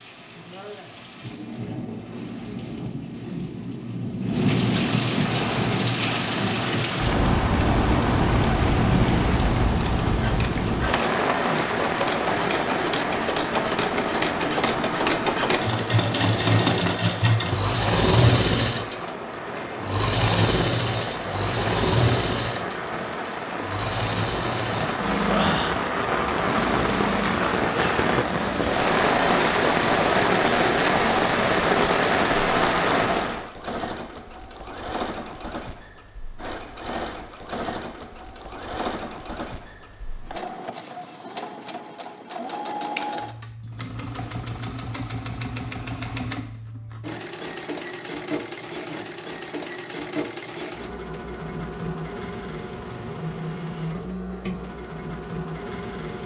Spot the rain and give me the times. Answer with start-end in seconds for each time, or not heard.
0.0-33.5.